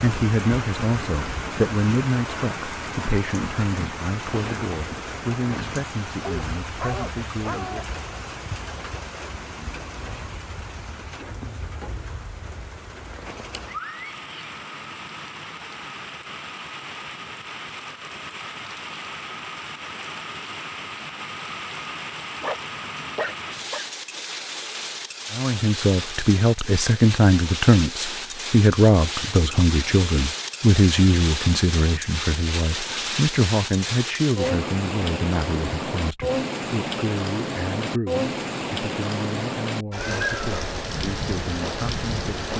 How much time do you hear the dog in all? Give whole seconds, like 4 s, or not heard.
3 s.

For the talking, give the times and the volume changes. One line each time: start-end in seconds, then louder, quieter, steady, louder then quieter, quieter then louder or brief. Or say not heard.
0.0-8.0 quieter
25.3-42.5 quieter.